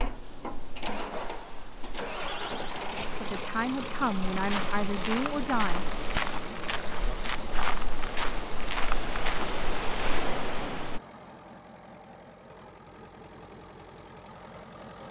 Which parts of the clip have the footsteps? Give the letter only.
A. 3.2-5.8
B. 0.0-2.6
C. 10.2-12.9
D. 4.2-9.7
D.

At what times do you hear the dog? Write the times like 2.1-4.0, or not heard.
not heard.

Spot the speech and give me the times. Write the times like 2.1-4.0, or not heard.
3.2-5.8.